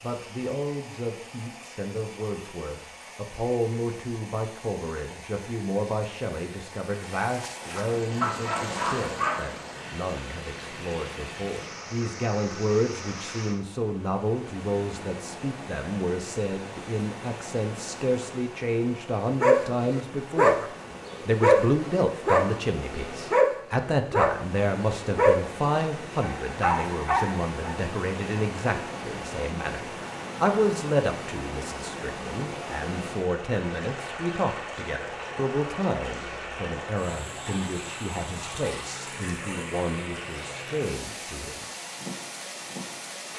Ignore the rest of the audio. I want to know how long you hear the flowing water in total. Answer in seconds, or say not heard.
43 s.